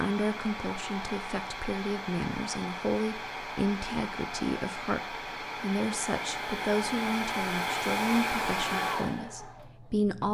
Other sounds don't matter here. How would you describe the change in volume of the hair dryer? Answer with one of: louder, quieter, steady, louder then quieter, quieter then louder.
louder.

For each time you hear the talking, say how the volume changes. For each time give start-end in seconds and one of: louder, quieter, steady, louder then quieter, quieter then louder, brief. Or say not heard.
0.0-10.2 steady.